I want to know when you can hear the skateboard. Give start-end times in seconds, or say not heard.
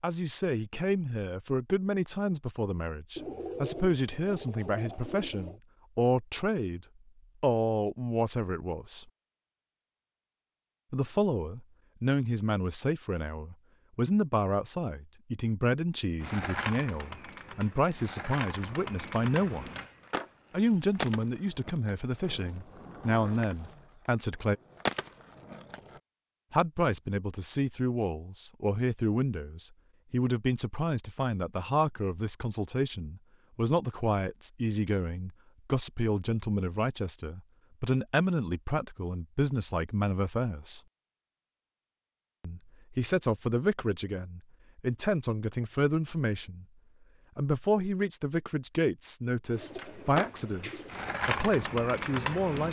16.2-26.0, 49.5-52.6.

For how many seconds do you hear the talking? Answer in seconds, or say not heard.
46 s.